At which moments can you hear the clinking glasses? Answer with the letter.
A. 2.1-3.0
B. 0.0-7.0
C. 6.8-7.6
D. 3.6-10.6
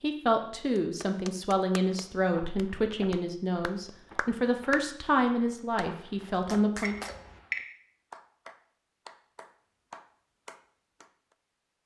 C.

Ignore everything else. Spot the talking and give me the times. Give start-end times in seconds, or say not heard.
0.0-7.0.